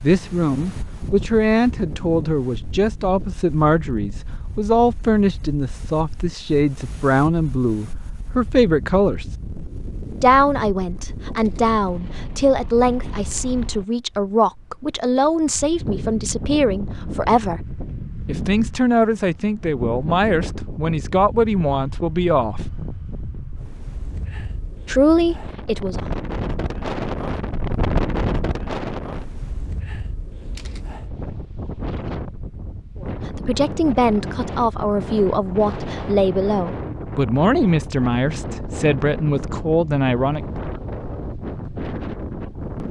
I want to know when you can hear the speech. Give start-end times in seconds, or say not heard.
0.0-9.2, 10.2-17.6, 18.2-22.6, 24.9-26.1, 33.0-40.6.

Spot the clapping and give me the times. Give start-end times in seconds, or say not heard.
not heard.